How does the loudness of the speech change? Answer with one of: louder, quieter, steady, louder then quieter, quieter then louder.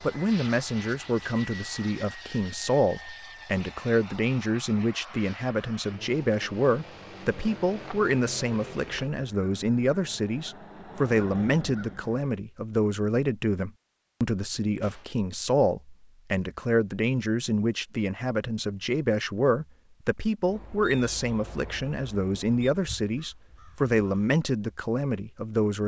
steady.